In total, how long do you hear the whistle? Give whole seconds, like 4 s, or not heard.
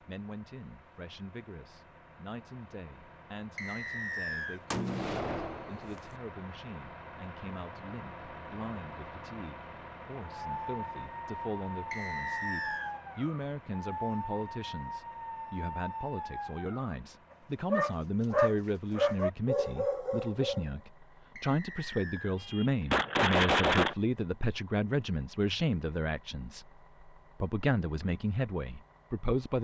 3 s.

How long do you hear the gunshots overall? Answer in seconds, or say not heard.
3 s.